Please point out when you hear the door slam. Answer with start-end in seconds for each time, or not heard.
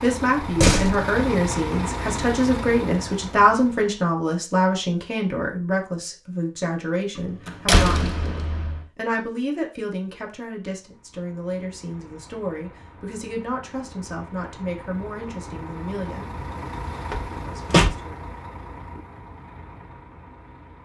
0.4-1.0, 7.2-8.8, 17.1-17.9.